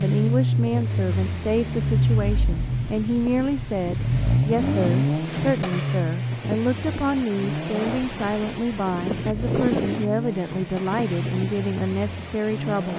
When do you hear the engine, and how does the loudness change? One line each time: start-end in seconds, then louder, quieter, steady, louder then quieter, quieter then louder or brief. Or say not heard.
0.0-12.9 quieter.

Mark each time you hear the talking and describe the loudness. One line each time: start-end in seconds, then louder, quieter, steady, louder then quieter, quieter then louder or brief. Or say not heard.
0.0-12.9 steady.